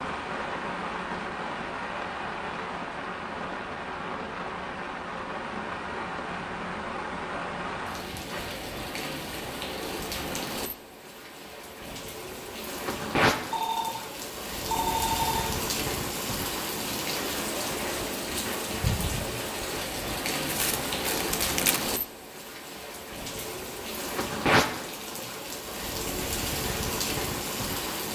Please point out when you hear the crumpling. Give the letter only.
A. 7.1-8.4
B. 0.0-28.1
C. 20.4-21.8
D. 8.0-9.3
C.